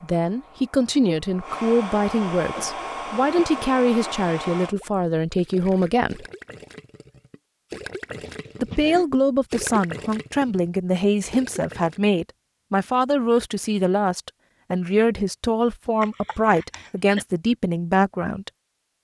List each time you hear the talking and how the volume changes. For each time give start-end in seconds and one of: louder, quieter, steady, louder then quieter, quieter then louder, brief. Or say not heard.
0.0-6.2 steady
8.6-18.5 steady.